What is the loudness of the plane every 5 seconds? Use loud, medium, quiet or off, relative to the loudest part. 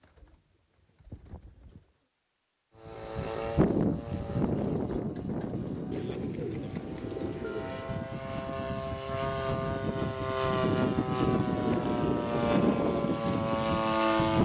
loud, medium, loud.